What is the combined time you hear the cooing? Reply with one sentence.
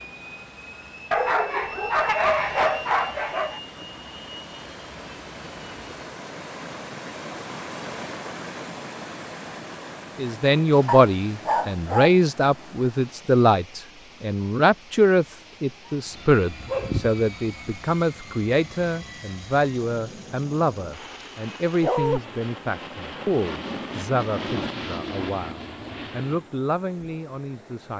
The cooing can't be heard in this clip.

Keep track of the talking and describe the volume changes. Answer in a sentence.
The loudness of the talking goes down.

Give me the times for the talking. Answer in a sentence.
You can hear the talking from 10.2 to 27.9 s.